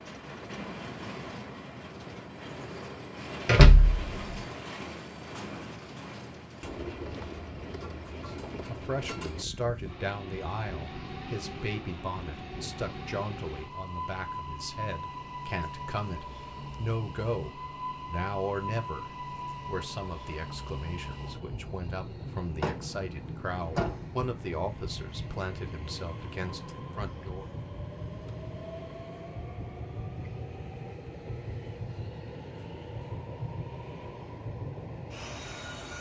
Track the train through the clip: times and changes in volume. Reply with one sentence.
You can hear the train from 0.0 to 35.9 s, at a steady volume.